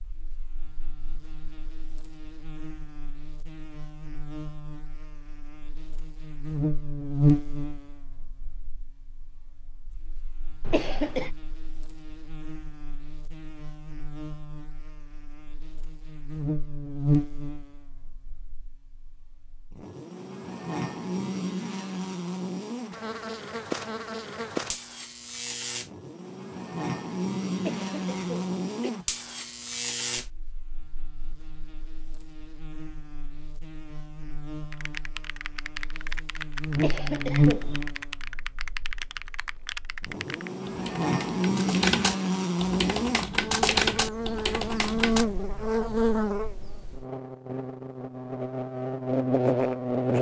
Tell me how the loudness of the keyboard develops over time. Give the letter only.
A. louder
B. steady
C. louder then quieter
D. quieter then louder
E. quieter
A.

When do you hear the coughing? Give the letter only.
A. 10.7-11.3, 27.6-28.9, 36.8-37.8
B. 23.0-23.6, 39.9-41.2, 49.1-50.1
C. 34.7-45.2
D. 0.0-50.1
A.